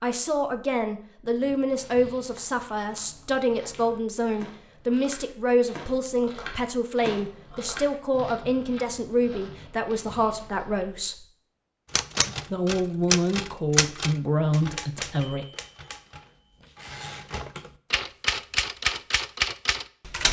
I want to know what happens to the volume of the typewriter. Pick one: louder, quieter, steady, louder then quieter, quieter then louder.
quieter then louder.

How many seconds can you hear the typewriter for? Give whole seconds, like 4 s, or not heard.
8 s.